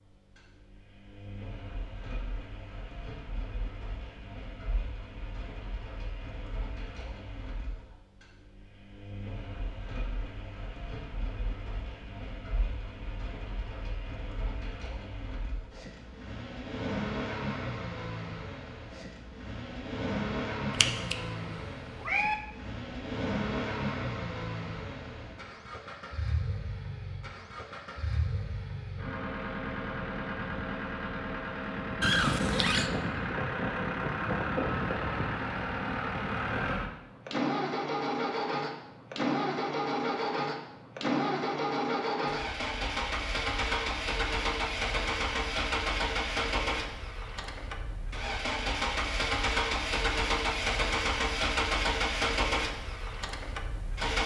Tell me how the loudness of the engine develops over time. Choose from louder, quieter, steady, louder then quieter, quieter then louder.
louder.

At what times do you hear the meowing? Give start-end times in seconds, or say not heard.
20.7-22.4, 32.0-32.9.